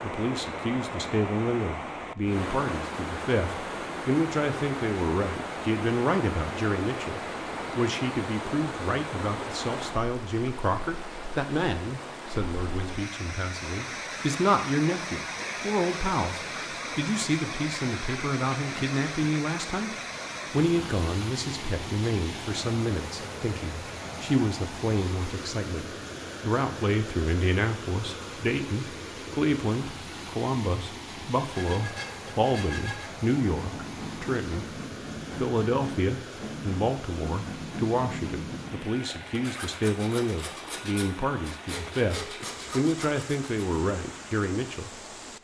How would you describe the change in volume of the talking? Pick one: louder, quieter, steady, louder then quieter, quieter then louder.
steady.